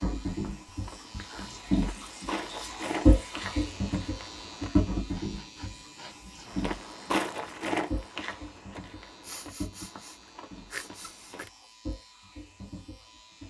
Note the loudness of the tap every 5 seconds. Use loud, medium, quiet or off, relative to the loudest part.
loud, medium, quiet.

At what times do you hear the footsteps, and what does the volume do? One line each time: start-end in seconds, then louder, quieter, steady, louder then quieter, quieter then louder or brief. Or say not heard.
0.2-4.7 louder then quieter
6.5-11.4 quieter.